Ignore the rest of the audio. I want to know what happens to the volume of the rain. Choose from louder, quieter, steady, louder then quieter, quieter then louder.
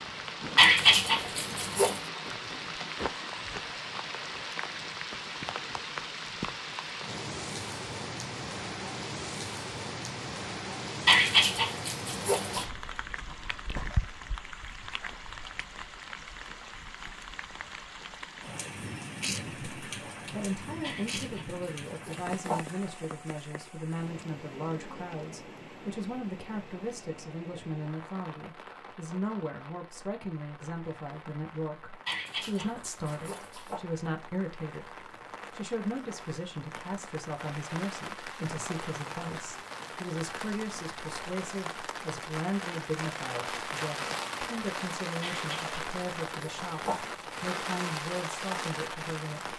quieter then louder.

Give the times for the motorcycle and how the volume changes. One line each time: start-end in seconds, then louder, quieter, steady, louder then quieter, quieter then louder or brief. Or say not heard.
not heard.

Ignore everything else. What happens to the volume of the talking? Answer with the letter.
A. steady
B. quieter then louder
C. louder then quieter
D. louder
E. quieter
A.